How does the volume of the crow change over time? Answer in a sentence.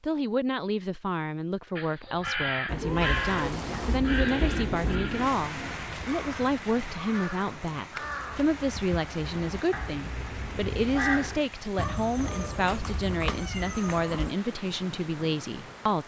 The loudness of the crow goes down.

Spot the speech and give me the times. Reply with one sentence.
The speech can be heard from 0.0 to 16.0 s.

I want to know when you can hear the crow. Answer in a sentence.
The crow can be heard from 1.8 to 11.4 s.